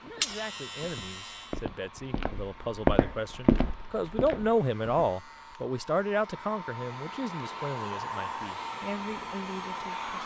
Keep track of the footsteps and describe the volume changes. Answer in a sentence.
The loudness of the footsteps goes up, then down.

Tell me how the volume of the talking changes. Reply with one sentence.
The loudness of the talking goes up, then down.